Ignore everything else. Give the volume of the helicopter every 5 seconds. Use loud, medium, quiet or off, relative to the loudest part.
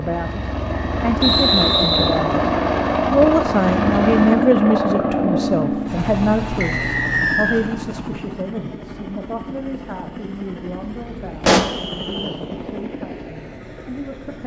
loud, medium, quiet.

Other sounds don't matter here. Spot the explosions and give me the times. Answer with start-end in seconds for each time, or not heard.
11.4-11.8.